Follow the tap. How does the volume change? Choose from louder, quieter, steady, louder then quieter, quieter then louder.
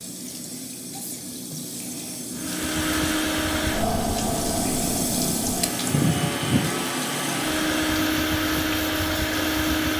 louder then quieter.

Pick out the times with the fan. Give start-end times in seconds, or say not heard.
2.4-9.9.